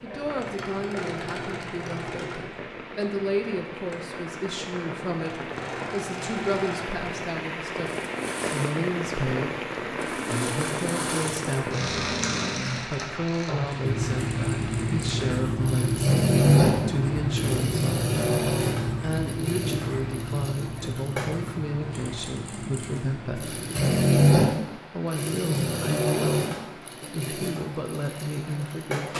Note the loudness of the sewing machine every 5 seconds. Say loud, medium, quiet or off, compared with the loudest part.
quiet, quiet, medium, loud, loud, medium.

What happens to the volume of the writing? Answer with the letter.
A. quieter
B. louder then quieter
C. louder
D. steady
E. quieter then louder
A.